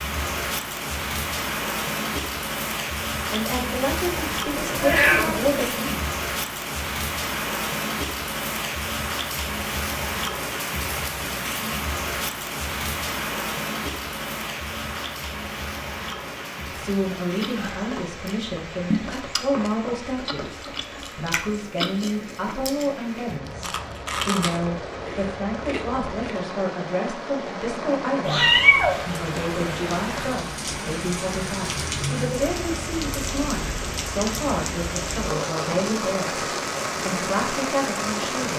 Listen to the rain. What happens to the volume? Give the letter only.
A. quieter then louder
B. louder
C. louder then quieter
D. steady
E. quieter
A.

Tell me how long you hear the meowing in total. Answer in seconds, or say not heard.
2 s.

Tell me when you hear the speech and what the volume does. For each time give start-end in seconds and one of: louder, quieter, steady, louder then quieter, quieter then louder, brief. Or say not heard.
3.3-6.1 brief
16.6-38.5 steady.